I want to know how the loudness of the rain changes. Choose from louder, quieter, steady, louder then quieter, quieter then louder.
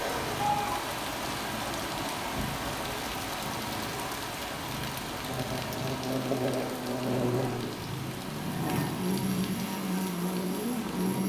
quieter.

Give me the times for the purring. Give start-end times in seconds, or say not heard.
0.0-11.2.